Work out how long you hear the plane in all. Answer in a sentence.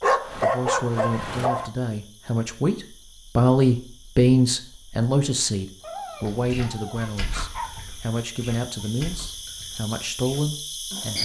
You can't hear the plane here.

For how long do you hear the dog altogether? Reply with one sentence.
You can hear the dog for 4 seconds altogether.